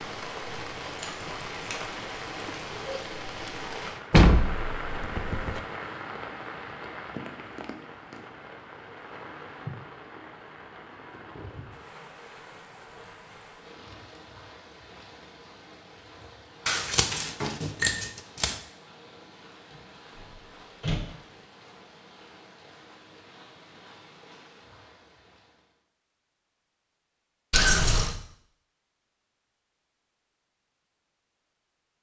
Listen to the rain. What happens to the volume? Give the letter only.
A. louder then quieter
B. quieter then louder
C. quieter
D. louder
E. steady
C.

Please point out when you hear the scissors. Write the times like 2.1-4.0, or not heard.
0.9-1.9, 16.6-18.6, 27.5-28.1.